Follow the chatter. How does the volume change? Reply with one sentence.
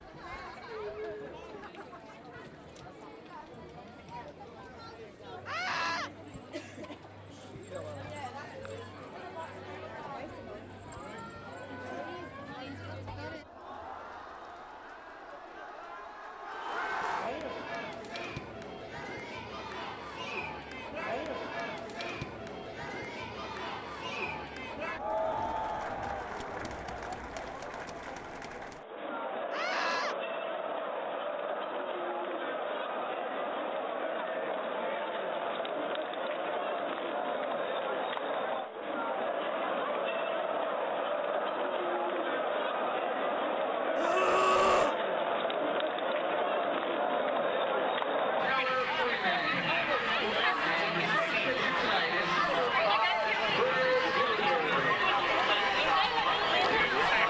The volume of the chatter goes up.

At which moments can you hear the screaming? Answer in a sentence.
You can hear the screaming from 5.5 to 6.1 s, from 29.5 to 30.1 s and from 44.0 to 45.0 s.